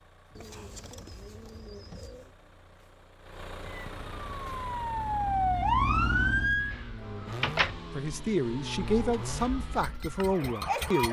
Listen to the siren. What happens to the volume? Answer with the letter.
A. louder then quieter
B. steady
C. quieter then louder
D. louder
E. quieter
A.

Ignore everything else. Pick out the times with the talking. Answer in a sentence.
You can hear the talking from 8.0 to 11.0 s.